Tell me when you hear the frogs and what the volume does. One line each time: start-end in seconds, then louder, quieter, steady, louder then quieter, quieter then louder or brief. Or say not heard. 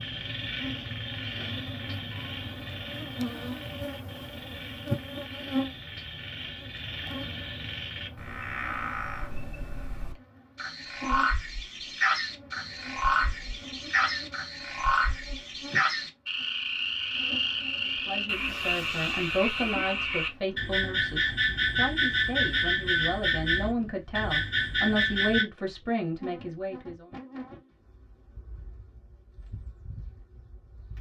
0.0-25.4 louder.